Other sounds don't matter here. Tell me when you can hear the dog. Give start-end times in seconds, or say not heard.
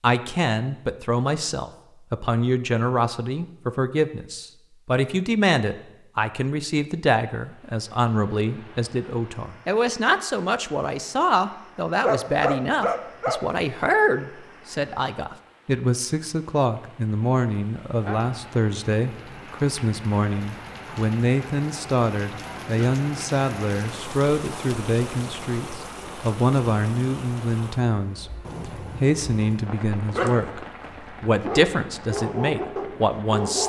12.0-13.4, 29.9-33.6.